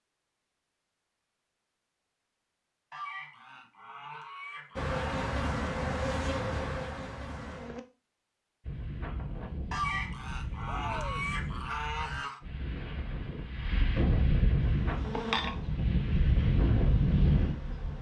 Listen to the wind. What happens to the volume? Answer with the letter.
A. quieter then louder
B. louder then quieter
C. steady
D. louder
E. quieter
D.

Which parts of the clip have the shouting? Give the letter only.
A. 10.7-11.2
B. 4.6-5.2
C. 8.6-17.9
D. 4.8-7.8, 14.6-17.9
A.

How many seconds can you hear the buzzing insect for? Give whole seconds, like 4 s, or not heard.
6 s.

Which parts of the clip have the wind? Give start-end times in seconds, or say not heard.
8.6-17.9.